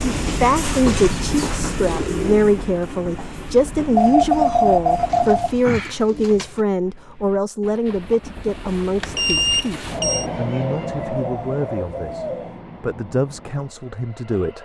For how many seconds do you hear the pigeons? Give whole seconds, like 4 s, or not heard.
6 s.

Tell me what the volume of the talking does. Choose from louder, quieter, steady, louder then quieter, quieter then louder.
quieter.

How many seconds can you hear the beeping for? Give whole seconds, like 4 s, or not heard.
3 s.